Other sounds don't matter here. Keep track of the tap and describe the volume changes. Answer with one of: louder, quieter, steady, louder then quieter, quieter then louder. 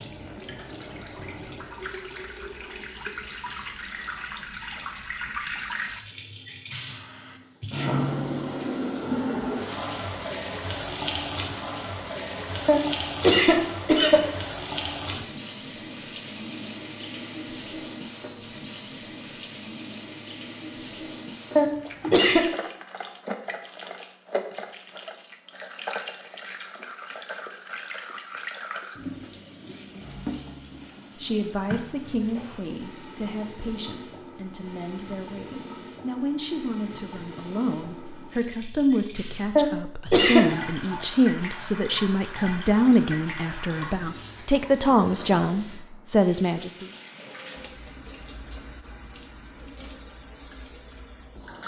quieter.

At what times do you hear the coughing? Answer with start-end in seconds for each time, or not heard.
12.7-14.2, 21.6-22.4, 39.5-40.5.